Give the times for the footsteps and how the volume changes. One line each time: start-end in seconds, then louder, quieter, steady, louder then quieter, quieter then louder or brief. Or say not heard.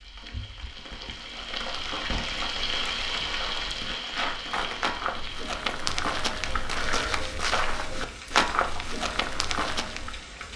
1.2-10.2 louder.